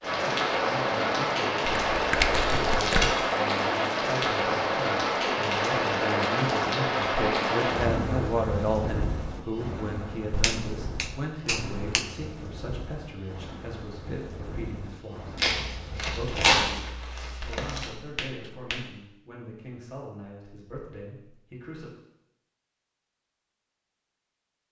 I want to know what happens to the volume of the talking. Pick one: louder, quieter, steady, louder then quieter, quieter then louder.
louder then quieter.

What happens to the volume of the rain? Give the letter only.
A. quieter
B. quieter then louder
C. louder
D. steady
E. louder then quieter
A.